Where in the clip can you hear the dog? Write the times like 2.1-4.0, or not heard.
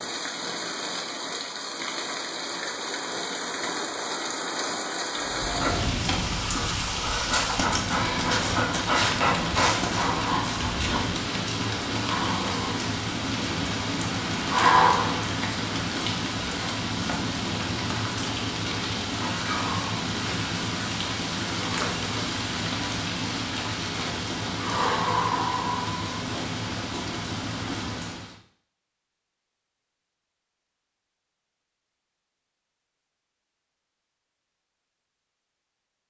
5.2-11.2.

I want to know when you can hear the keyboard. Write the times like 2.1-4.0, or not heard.
not heard.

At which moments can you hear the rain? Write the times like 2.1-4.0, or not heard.
0.0-28.4.